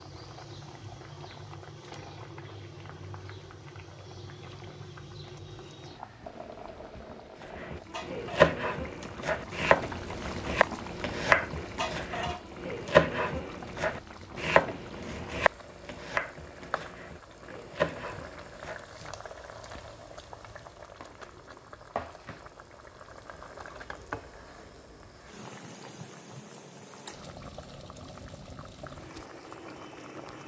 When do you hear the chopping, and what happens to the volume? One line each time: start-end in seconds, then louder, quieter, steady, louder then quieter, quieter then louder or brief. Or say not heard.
7.5-19.1 quieter.